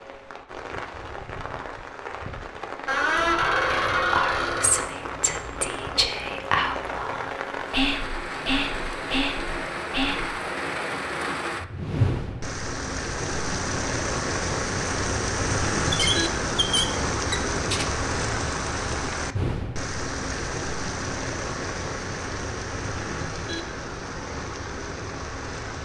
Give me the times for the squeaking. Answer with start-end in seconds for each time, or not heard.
2.9-4.9, 15.9-17.9.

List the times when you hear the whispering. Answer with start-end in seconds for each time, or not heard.
3.1-10.3.